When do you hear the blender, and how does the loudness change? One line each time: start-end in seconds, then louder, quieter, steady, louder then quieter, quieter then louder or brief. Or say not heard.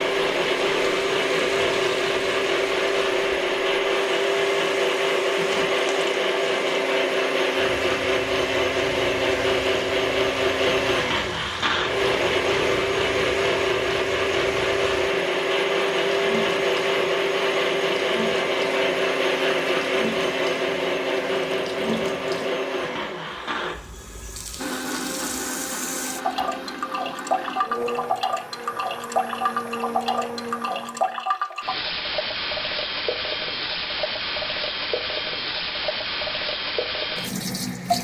0.0-31.2 quieter.